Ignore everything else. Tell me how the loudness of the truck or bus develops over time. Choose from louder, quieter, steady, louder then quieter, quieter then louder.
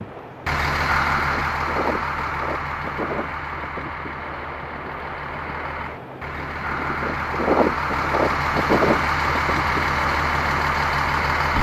quieter then louder.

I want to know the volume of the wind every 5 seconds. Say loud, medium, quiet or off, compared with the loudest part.
medium, loud, medium.